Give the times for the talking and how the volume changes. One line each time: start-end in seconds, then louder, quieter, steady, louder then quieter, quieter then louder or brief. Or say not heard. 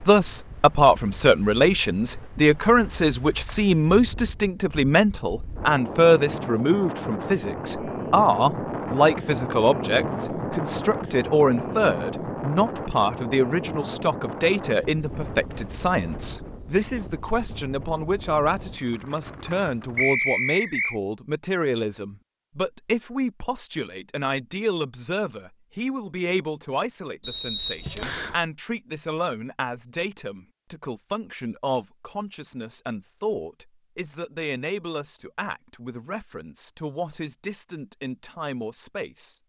0.1-39.4 quieter.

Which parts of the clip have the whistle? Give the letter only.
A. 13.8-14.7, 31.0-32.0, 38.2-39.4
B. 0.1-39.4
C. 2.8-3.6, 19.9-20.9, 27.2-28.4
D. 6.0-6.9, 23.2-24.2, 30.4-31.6
C.